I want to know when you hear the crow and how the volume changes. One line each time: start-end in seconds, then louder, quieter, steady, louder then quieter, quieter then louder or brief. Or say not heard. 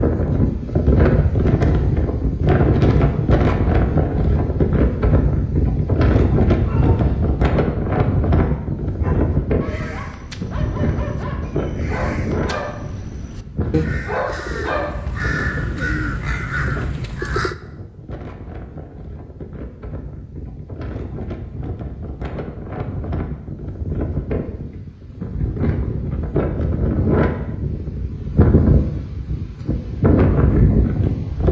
9.6-17.6 louder.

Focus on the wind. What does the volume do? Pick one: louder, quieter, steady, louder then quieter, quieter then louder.
quieter then louder.